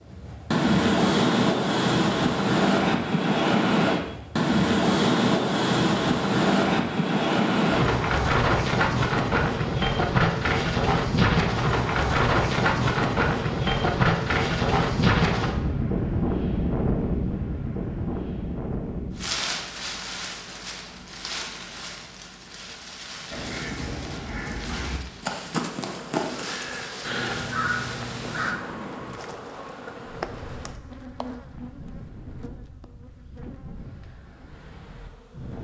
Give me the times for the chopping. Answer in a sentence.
You can't hear the chopping here.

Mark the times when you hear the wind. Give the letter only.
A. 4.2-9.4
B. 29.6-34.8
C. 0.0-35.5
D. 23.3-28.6
C.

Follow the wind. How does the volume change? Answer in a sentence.
The volume of the wind goes down.